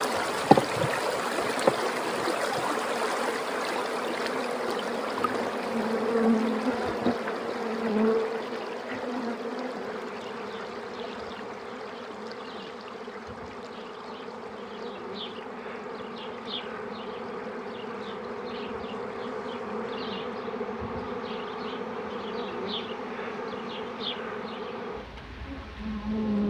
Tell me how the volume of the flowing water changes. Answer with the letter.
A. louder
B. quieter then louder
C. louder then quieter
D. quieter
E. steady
D.